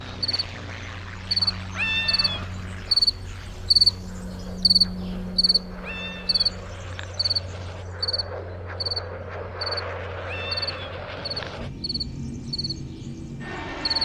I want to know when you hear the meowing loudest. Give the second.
2 s.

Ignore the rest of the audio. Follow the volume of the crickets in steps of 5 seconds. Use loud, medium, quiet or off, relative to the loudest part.
loud, medium, medium.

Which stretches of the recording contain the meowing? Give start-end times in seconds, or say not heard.
1.8-2.7, 5.8-7.0, 10.2-11.5.